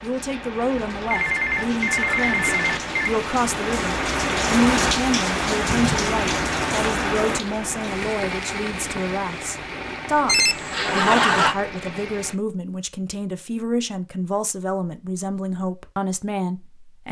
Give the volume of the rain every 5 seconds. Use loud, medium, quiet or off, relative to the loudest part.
loud, loud, medium, off.